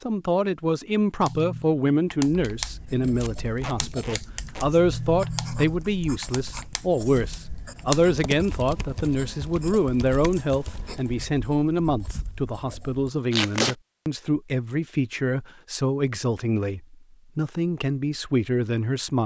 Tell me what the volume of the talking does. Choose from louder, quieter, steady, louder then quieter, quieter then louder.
steady.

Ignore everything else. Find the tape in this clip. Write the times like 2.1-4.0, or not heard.
3.2-4.7, 13.3-13.8.